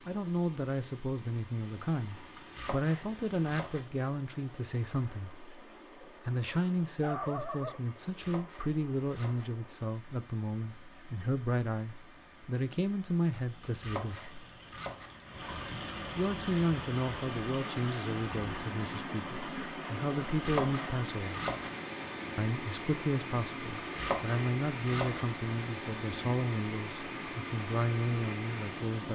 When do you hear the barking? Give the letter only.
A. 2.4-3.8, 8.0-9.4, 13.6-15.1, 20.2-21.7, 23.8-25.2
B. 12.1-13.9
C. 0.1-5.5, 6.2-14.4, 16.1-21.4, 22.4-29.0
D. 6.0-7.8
D.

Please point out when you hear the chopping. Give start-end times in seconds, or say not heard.
2.4-3.8, 8.0-9.4, 13.6-15.1, 20.2-21.7, 23.8-25.2.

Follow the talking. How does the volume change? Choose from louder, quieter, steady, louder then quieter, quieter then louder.
steady.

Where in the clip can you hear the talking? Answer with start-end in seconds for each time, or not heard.
0.1-5.5, 6.2-14.4, 16.1-21.4, 22.4-29.0.